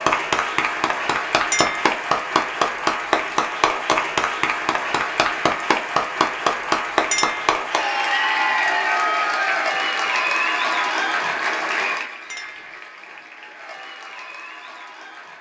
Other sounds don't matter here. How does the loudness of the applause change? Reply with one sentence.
The volume of the applause goes down.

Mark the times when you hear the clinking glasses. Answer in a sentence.
You can hear the clinking glasses from 1.5 to 1.9 s, from 7.1 to 7.6 s and from 12.3 to 12.8 s.